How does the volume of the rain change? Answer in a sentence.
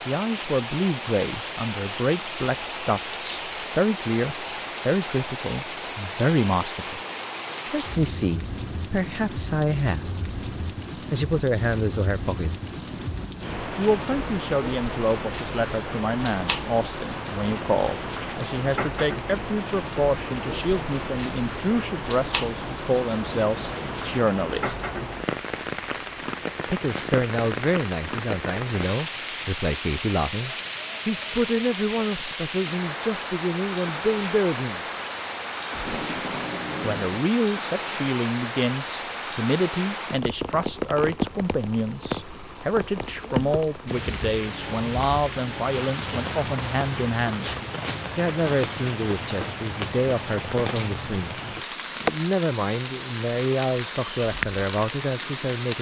The loudness of the rain stays about the same.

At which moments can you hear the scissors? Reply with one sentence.
You can't hear the scissors here.